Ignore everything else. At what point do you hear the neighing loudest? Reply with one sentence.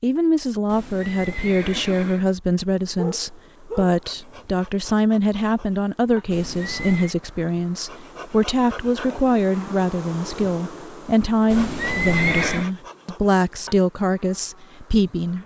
The loudest moment of the neighing is at 12 seconds.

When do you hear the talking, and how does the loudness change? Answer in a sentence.
You can hear the talking from 0.0 to 15.4 s, at a steady volume.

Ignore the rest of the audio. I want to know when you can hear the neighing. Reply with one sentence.
The neighing can be heard from 0.7 to 2.2 s, from 6.3 to 7.2 s and from 11.5 to 12.7 s.